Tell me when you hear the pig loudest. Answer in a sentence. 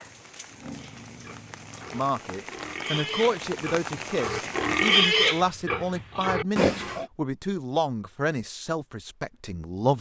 The loudest moment of the pig is at 5 seconds.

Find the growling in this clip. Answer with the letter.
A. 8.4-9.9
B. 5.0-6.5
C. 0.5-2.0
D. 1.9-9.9
C.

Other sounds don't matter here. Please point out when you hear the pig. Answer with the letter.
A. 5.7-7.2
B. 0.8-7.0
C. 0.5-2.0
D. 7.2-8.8
B.